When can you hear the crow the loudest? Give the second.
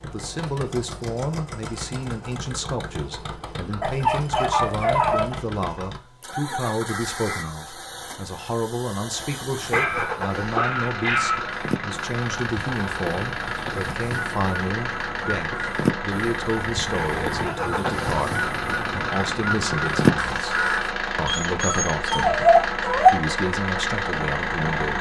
20 s.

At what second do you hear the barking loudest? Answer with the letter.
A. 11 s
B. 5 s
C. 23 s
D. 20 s
C.